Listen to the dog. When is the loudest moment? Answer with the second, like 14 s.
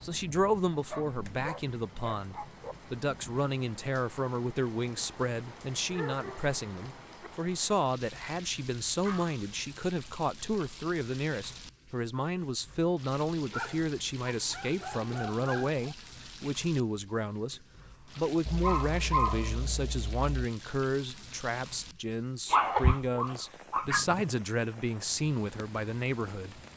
23 s.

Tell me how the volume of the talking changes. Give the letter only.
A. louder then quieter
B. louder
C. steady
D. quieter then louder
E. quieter
C.